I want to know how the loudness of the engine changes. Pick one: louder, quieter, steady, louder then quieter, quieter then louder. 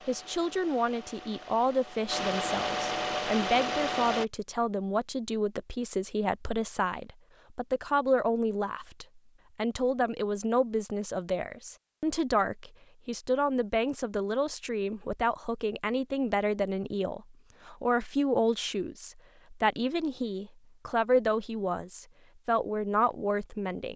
louder.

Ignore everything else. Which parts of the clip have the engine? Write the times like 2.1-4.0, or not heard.
0.0-4.2.